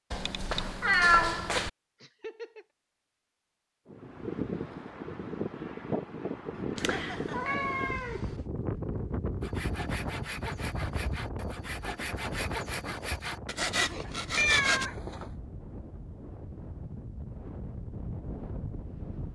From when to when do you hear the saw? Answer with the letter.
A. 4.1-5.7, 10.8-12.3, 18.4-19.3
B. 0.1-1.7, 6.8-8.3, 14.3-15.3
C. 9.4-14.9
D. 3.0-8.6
C.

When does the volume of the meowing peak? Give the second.
1 s.